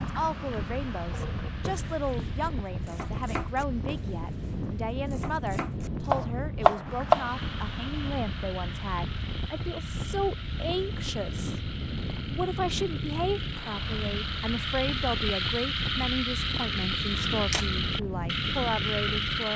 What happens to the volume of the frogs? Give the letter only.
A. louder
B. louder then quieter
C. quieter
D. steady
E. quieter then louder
A.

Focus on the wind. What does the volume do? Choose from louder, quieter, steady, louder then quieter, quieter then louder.
steady.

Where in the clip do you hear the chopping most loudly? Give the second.
7 s.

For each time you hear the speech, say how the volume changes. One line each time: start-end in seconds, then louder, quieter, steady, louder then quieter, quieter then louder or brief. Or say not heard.
0.0-19.5 steady.